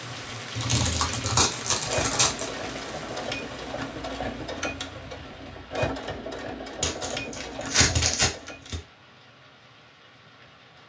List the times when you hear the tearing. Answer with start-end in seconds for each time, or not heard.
0.6-2.5, 6.8-8.8.